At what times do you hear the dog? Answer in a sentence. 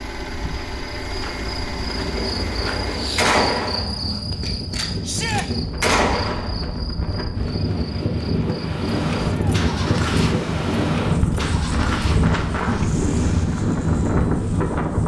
The dog can't be heard in this clip.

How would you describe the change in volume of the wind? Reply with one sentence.
The volume of the wind goes up.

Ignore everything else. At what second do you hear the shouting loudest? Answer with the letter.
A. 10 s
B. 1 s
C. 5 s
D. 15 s
C.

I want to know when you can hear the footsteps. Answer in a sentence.
You can't hear the footsteps here.